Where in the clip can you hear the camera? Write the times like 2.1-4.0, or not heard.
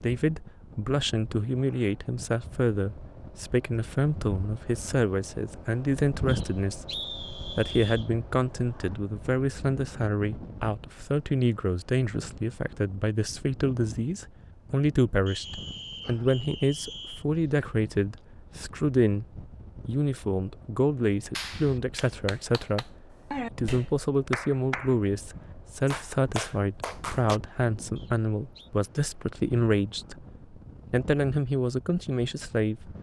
not heard.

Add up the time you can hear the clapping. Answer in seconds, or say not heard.
6 s.